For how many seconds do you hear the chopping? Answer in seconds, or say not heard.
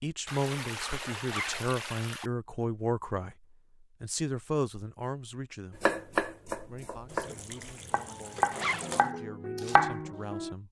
5 s.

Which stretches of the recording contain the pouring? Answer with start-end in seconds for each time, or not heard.
0.2-2.3, 7.0-9.1.